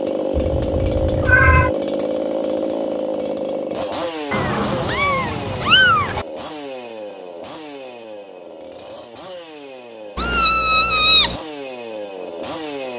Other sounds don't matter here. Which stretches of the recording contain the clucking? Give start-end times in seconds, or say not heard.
not heard.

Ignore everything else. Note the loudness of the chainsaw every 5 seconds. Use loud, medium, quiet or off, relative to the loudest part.
loud, medium, medium.